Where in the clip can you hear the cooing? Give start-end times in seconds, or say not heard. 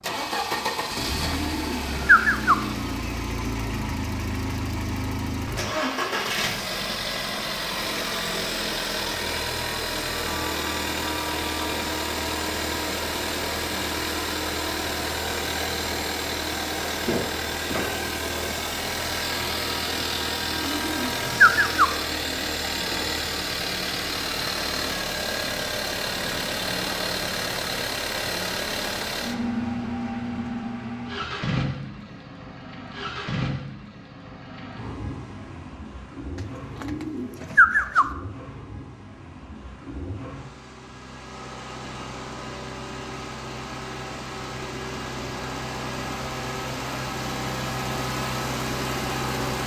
1.3-2.5, 20.6-21.9, 36.8-38.0.